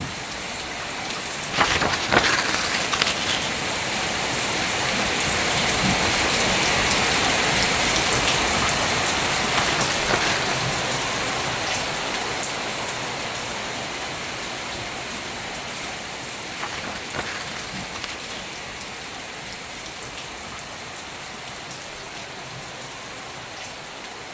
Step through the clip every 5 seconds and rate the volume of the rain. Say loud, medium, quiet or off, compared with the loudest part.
medium, loud, medium, quiet, quiet.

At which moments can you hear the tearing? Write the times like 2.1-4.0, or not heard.
1.5-3.5, 9.5-10.6, 16.6-18.6.